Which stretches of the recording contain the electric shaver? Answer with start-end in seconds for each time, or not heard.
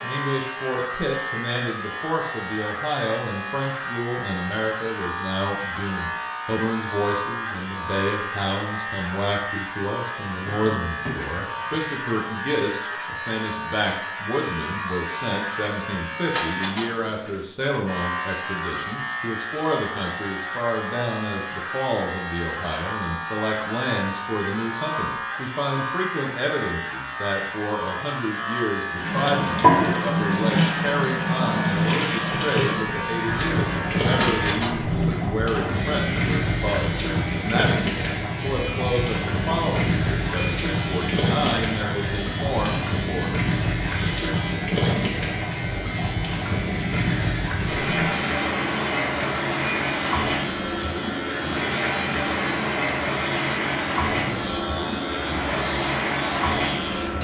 0.0-57.1.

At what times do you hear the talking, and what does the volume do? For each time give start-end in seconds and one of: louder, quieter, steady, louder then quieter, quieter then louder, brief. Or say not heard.
0.0-43.3 steady.